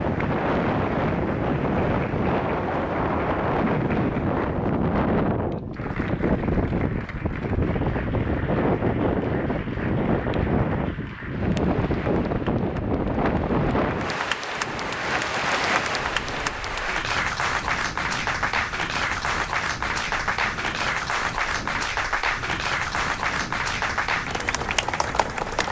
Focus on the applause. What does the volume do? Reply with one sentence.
The loudness of the applause goes up.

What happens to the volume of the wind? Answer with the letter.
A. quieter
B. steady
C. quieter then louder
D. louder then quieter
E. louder
A.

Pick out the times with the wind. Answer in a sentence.
You can hear the wind from 0.0 to 25.6 s.